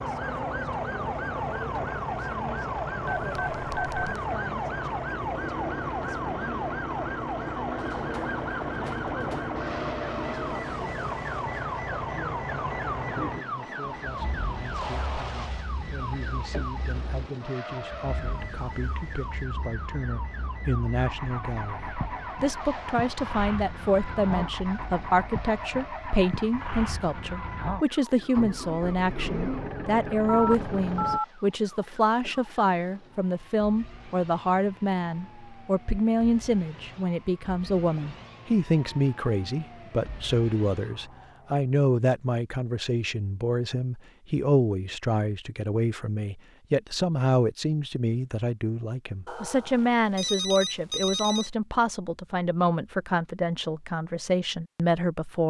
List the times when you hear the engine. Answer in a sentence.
The engine can be heard from 0.0 to 31.2 s.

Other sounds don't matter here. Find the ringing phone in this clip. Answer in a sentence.
You can hear the ringing phone from 3.0 to 4.2 s, from 30.2 to 31.2 s and from 49.2 to 51.5 s.